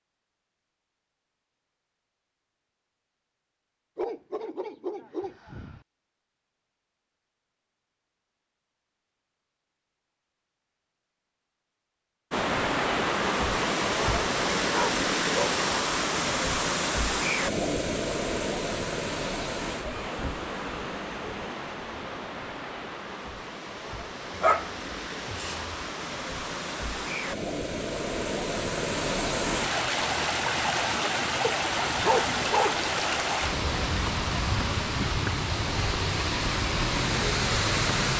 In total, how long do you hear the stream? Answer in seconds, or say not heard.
26 s.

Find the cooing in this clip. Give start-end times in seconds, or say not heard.
not heard.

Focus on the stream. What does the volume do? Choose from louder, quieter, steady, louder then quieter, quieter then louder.
quieter then louder.